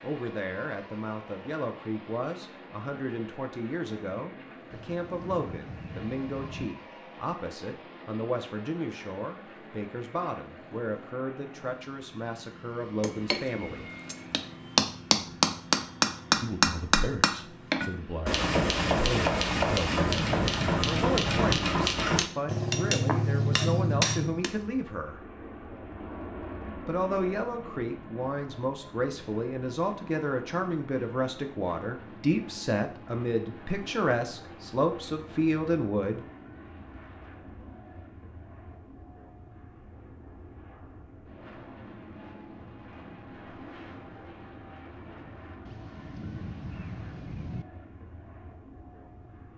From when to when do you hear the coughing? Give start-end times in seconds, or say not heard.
not heard.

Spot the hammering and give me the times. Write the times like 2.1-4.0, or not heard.
13.0-24.5.